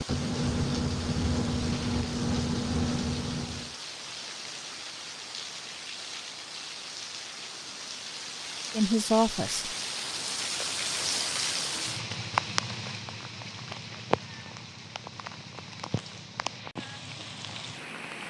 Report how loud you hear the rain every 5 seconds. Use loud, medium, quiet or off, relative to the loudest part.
medium, medium, loud, medium.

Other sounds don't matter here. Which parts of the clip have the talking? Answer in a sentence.
You can hear the talking from 8.7 to 9.8 s.